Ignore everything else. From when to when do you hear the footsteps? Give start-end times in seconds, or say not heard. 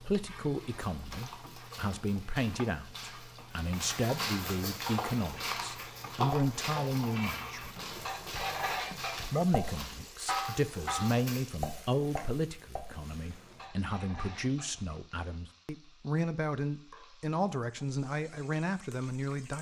0.6-11.4.